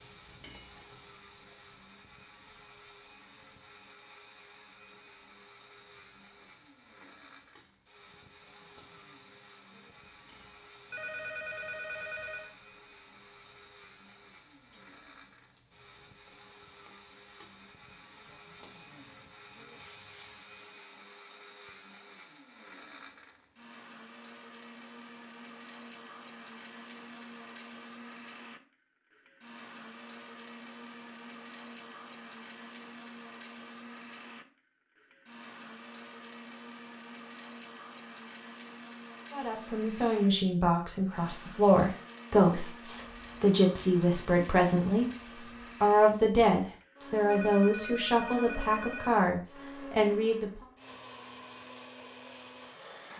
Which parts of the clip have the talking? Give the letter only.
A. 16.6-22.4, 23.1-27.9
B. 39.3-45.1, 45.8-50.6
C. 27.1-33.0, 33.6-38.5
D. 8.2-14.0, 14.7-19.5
B.